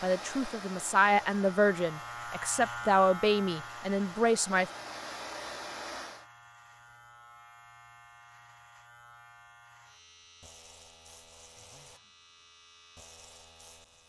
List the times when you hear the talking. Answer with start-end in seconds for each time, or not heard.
0.0-4.7.